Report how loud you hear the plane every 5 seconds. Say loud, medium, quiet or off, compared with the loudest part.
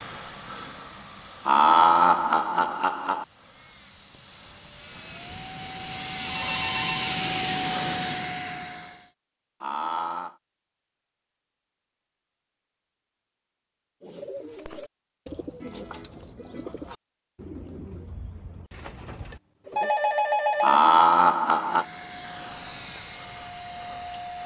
quiet, loud, off, off, medium.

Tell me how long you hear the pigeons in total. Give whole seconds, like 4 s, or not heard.
6 s.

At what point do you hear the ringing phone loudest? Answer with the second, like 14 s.
20 s.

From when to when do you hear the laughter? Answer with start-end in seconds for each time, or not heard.
1.4-3.2, 9.6-10.3, 20.6-21.9.